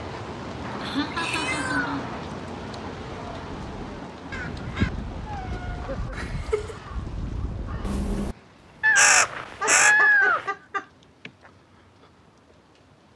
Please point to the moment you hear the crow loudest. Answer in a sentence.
The loudest moment of the crow is at 9 seconds.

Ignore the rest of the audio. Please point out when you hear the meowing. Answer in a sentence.
The meowing can be heard from 0.6 to 2.2 s, from 5.2 to 6.8 s and from 8.8 to 10.5 s.